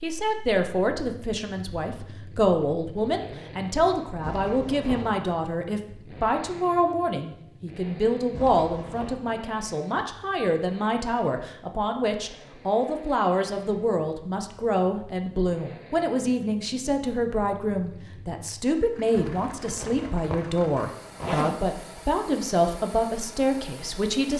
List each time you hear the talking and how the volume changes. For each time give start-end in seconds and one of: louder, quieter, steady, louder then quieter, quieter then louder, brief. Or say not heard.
0.0-24.3 steady.